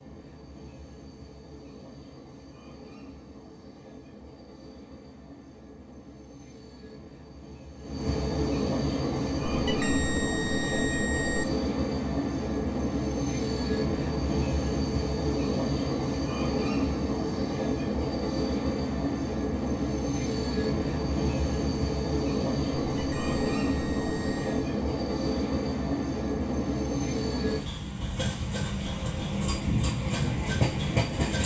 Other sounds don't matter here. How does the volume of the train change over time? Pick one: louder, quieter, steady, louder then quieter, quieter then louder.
louder.